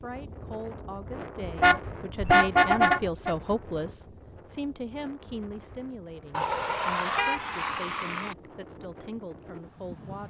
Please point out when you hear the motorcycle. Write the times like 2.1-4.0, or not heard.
not heard.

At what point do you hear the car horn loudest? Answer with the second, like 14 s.
2 s.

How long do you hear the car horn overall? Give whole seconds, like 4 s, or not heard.
4 s.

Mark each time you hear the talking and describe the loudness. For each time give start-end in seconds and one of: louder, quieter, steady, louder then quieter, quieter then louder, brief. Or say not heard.
0.0-10.2 louder then quieter.